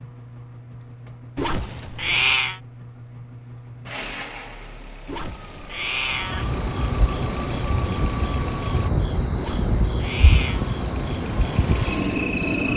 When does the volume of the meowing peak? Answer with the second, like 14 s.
2 s.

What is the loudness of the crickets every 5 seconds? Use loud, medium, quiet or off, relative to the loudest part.
off, loud, loud.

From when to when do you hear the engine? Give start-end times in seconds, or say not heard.
0.0-8.9, 10.6-12.7.